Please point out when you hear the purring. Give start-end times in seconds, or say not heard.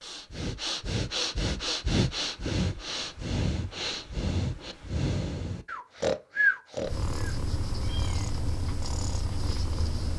6.8-10.1.